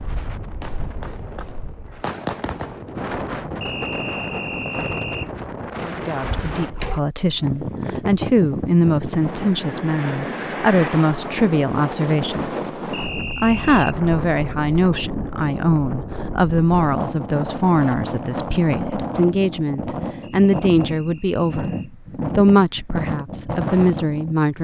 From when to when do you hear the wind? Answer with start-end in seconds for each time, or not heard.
0.0-24.5.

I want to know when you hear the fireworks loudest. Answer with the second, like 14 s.
2 s.